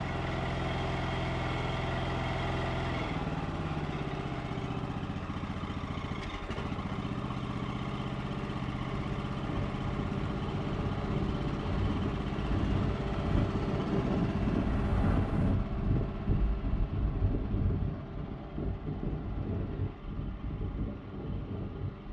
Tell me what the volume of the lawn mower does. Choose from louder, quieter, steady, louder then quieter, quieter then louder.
quieter.